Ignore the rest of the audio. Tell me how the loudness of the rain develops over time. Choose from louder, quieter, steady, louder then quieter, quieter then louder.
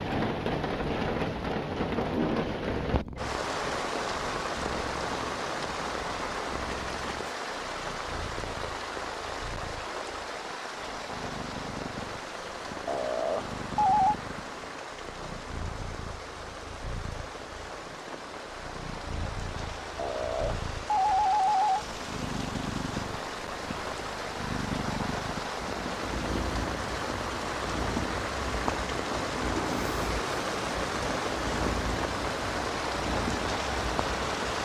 quieter then louder.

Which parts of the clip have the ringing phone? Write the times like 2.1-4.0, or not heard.
12.8-14.2, 19.9-21.8.